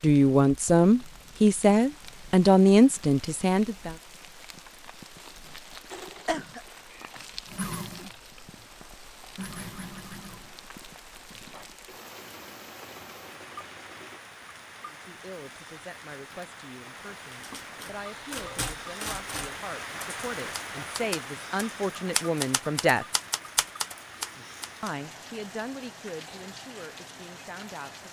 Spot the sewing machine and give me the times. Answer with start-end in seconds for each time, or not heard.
5.9-14.2.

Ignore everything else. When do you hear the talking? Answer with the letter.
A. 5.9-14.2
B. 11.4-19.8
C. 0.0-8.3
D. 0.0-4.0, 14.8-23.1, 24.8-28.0
D.